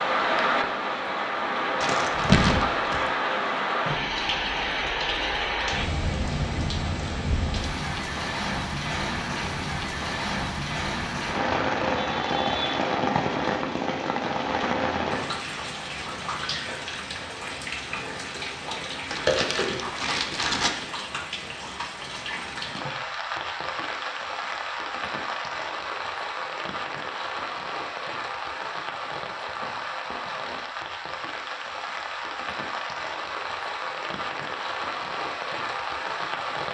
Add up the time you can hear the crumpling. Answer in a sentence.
You can hear the crumpling for 3 seconds altogether.